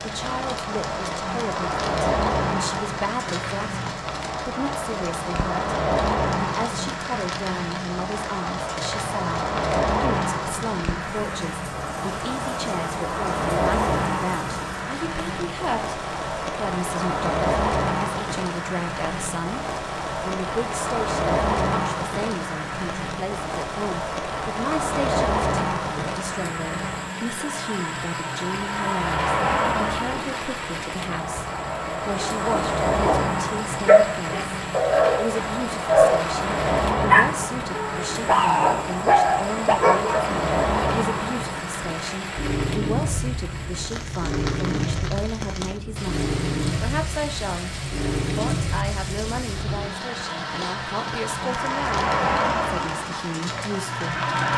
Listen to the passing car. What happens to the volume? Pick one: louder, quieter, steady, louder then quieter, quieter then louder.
steady.